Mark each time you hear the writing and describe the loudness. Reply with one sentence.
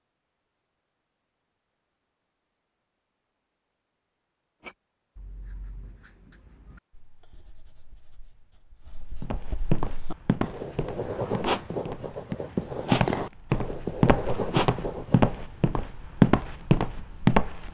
The writing can be heard from 4.6 to 15.4 s, getting quieter then louder.